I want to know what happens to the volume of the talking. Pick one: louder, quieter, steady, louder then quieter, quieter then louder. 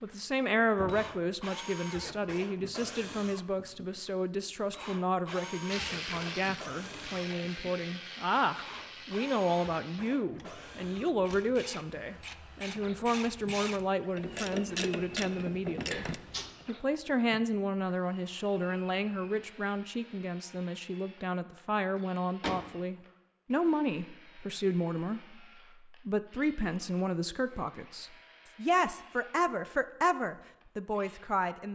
steady.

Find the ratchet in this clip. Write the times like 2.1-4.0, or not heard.
5.7-16.2.